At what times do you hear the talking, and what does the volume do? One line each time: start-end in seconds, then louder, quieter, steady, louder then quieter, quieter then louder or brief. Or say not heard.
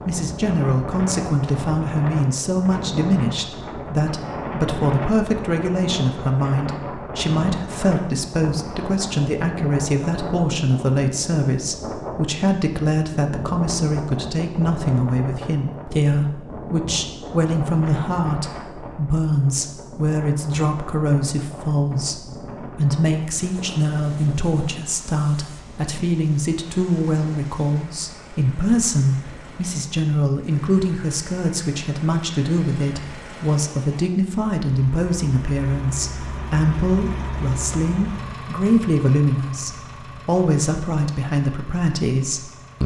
0.0-42.8 steady.